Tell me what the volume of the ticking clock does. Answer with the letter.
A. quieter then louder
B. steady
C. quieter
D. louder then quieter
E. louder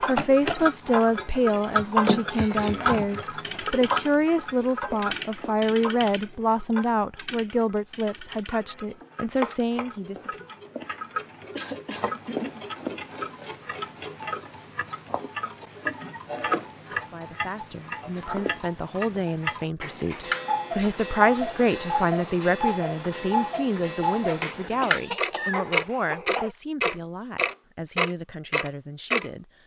A.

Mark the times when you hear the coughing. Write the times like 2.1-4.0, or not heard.
2.4-3.0, 11.6-12.7, 24.8-26.5.